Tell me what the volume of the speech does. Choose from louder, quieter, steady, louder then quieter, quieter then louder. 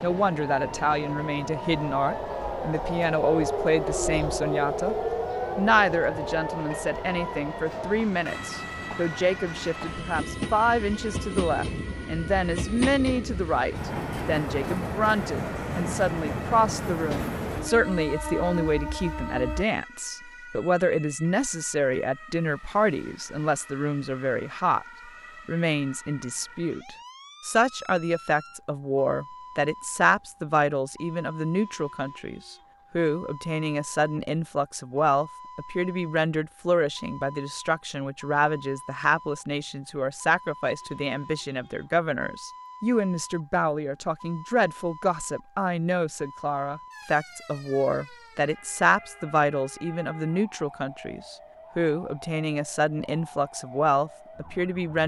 steady.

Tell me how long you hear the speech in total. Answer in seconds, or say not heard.
54 s.